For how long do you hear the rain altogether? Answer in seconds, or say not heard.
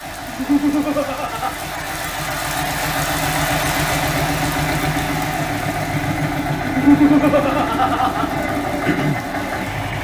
10 s.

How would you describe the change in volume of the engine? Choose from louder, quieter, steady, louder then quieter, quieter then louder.
louder.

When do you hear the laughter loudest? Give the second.
7 s.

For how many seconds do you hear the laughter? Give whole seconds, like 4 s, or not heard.
3 s.